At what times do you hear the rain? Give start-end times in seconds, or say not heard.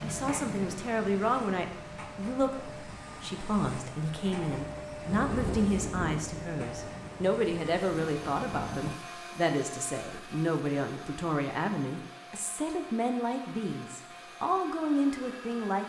0.0-9.0.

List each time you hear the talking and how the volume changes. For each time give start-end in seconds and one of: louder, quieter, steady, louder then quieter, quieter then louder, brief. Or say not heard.
0.0-15.8 steady.